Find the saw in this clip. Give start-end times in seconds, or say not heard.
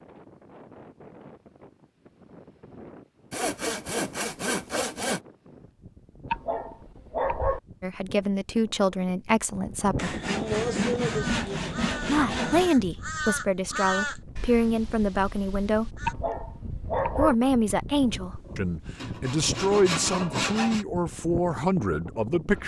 3.3-5.2, 9.9-12.7, 18.0-20.9.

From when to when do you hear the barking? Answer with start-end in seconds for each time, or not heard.
6.3-7.6, 16.1-17.4.